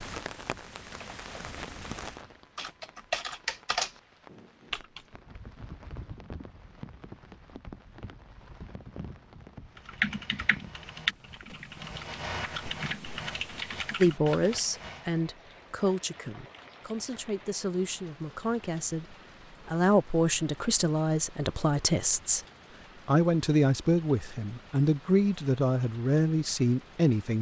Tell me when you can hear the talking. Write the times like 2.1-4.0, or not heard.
14.0-22.4, 23.1-27.3.